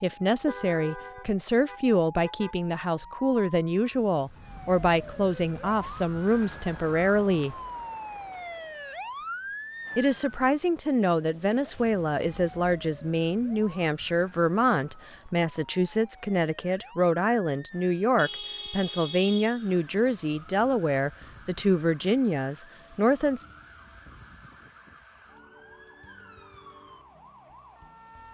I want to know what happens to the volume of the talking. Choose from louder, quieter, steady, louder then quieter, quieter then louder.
steady.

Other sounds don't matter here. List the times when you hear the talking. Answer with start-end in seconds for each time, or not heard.
0.0-7.5, 9.9-23.4.